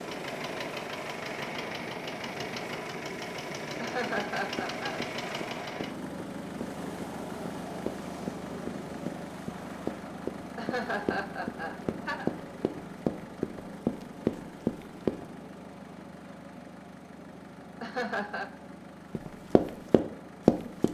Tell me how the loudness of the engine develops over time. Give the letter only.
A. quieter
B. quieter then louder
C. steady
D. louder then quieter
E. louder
A.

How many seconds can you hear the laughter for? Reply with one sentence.
The laughter can be heard for 4 seconds in total.